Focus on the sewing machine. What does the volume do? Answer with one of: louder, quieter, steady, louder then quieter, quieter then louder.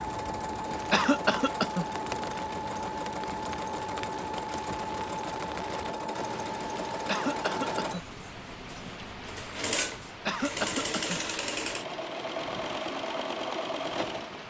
steady.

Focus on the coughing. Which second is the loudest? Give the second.
1 s.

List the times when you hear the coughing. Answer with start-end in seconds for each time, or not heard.
0.9-1.9, 7.0-8.0, 10.2-11.2.